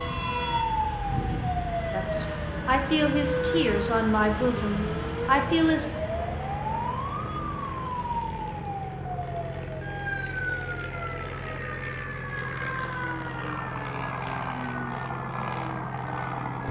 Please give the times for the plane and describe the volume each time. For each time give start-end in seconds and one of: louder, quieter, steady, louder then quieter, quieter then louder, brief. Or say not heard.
0.0-16.6 louder.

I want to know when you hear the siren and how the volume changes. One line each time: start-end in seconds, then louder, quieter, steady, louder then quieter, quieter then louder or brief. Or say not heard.
0.0-16.6 quieter.